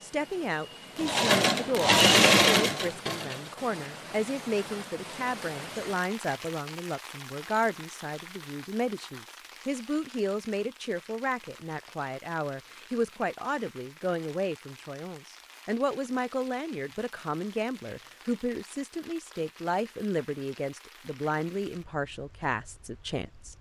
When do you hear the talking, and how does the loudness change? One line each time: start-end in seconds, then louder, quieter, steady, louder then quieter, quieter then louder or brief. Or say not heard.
0.0-23.5 steady.